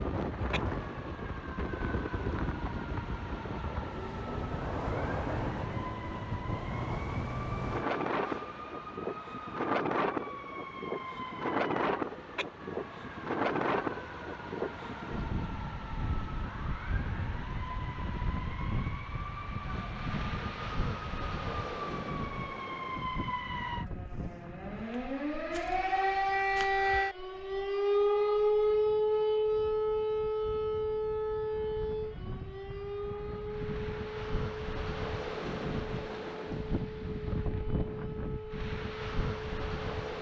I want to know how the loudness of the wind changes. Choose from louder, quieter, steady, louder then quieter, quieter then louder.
quieter then louder.